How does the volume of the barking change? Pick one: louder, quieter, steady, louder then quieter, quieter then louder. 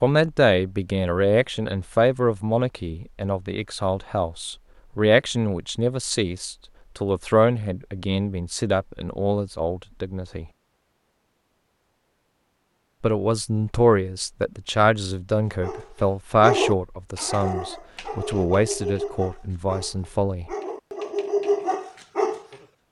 quieter then louder.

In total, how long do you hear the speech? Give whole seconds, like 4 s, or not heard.
18 s.